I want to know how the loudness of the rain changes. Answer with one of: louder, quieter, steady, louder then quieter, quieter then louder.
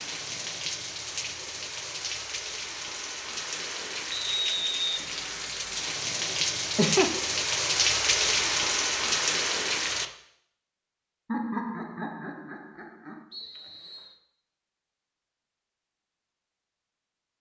louder.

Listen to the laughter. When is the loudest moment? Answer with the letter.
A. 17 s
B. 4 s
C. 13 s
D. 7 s
D.